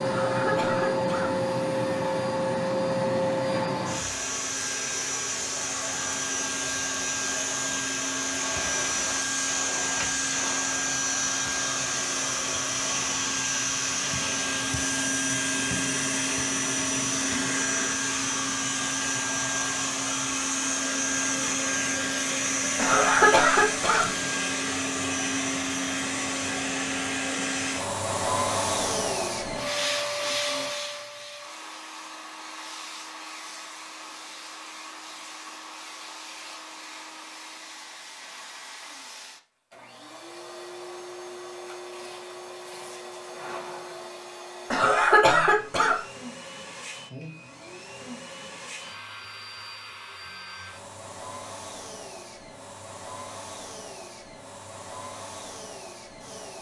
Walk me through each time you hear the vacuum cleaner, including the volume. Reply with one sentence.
The vacuum cleaner can be heard from 0.0 to 56.5 s, getting quieter.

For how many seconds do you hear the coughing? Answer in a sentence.
You can hear the coughing for 4 seconds altogether.